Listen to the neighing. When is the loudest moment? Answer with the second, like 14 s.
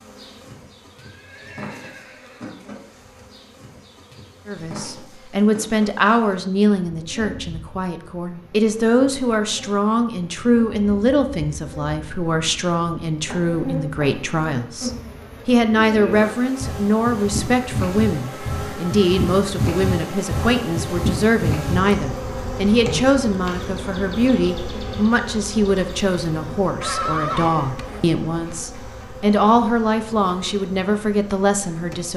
27 s.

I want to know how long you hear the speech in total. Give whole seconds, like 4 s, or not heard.
28 s.